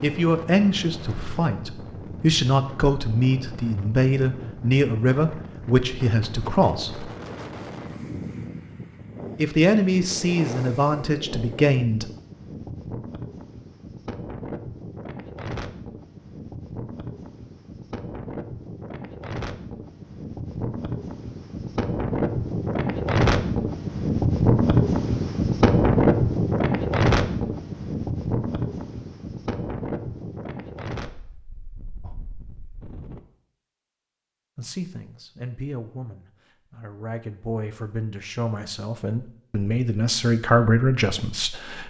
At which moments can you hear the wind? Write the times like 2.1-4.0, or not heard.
0.0-33.2.